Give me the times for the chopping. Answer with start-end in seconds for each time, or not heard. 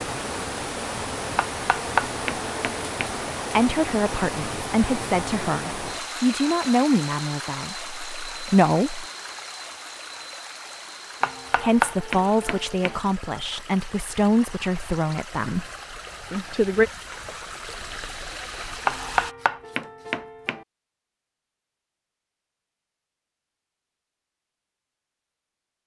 1.4-3.1, 11.2-13.0, 18.9-20.6.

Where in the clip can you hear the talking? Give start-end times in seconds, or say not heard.
3.5-9.1, 11.6-15.7, 16.3-16.9.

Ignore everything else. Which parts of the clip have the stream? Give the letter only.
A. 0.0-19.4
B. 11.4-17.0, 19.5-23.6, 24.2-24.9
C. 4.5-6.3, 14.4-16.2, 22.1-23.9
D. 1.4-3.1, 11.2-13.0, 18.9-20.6
A.